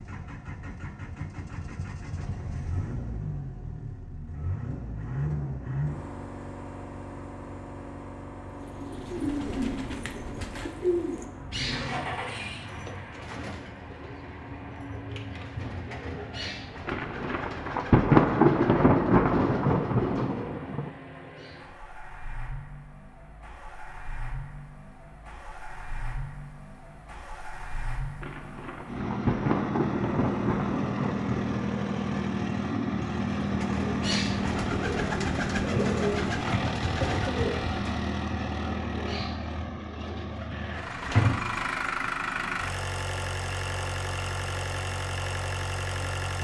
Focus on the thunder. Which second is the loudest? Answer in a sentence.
The volume of the thunder peaks at 18 seconds.